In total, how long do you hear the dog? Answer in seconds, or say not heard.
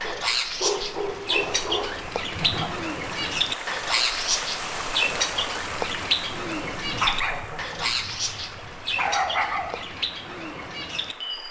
5 s.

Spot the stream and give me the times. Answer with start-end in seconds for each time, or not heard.
0.2-11.4.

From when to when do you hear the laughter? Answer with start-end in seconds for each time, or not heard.
2.4-2.9, 6.8-8.0.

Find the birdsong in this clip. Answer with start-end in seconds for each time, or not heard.
0.0-11.4.